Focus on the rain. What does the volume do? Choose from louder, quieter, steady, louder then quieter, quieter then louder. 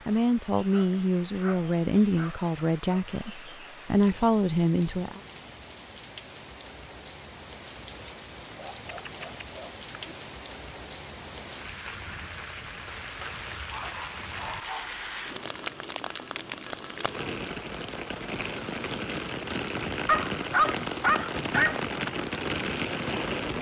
louder.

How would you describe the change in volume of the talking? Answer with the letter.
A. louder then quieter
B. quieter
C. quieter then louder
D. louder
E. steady
C.